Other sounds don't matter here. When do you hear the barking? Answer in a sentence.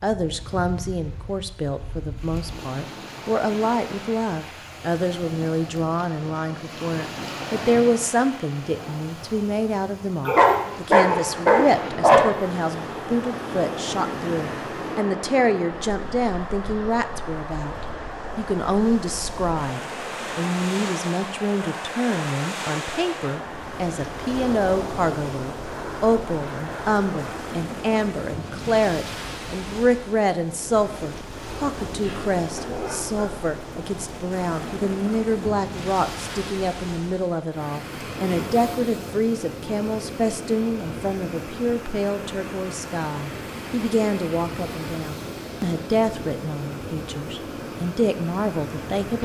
You can hear the barking from 10.2 to 12.2 s and from 32.0 to 33.2 s.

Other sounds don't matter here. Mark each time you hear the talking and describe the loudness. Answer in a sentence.
You can hear the talking from 0.0 to 49.2 s, at a steady volume.